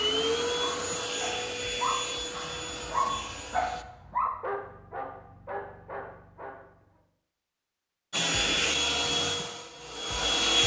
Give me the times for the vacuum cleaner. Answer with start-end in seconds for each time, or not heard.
0.0-3.9, 8.1-10.6.